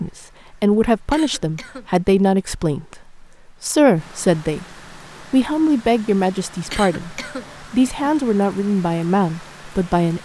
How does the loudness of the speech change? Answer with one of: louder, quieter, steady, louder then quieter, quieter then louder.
steady.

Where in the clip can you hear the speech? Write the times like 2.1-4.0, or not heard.
0.0-4.7, 5.3-10.2.